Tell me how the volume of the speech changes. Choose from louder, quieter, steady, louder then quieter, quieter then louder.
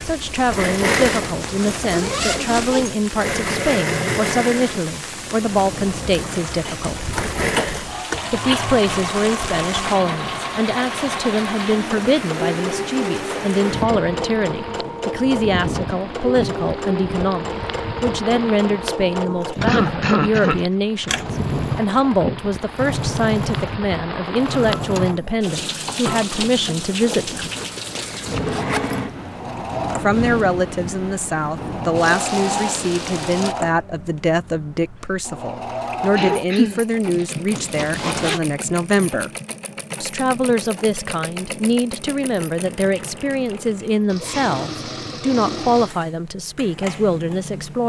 steady.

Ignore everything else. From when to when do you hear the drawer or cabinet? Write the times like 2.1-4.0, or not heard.
not heard.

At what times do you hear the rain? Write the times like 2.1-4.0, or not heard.
0.0-33.5.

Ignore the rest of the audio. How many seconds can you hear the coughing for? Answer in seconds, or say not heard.
4 s.